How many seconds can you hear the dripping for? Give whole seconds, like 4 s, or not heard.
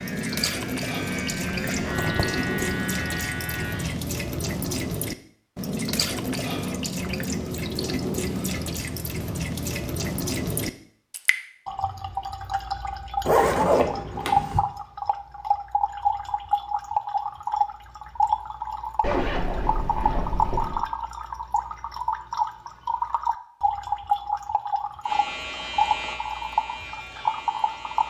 28 s.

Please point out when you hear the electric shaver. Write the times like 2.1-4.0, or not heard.
0.0-4.0, 25.0-28.0.